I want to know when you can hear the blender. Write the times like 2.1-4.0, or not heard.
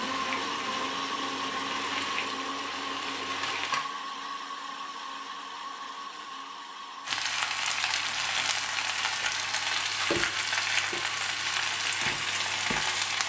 0.0-13.2.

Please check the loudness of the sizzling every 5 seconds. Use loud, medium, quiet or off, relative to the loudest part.
medium, loud, loud.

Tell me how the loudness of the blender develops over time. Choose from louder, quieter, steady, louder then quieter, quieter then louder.
quieter.